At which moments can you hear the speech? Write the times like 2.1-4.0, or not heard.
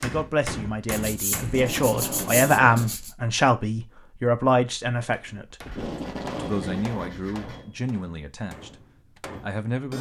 0.0-5.7, 6.3-8.8, 9.4-9.9.